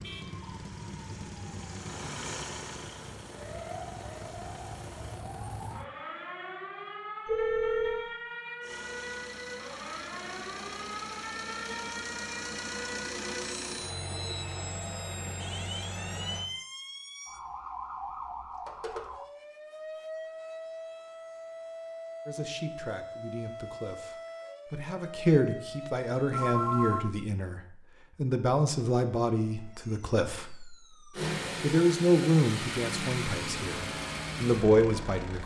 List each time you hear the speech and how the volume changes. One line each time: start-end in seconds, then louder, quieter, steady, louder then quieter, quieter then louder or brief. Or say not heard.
22.2-35.4 louder.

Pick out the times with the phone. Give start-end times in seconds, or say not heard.
7.2-8.1, 18.6-19.1, 26.3-27.1.